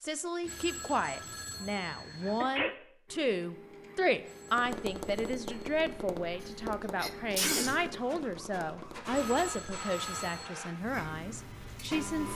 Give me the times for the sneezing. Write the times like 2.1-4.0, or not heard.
2.0-2.8, 6.4-7.8.